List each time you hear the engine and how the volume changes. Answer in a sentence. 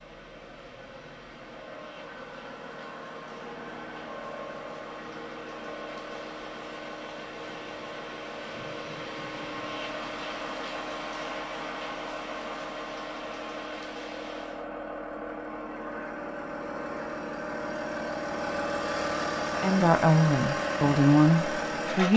You can hear the engine from 0.0 to 22.1 s, getting louder.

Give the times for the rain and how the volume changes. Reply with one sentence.
You can hear the rain from 0.0 to 14.7 s, getting louder.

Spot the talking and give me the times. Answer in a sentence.
You can hear the talking from 19.6 to 22.1 s.